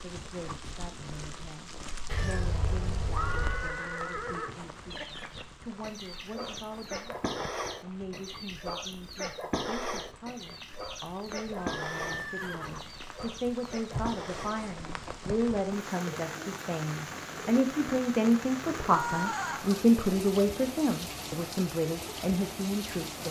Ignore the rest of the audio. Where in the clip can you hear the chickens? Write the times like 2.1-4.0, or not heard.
4.9-15.6.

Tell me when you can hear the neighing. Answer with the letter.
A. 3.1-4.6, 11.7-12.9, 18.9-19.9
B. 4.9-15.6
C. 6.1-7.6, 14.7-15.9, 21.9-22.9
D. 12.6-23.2
A.